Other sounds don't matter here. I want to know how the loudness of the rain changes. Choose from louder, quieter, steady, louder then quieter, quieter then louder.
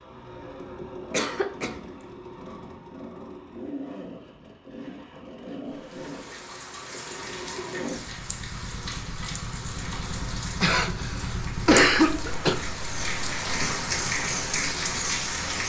louder.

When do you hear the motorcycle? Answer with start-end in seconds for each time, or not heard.
0.0-15.6.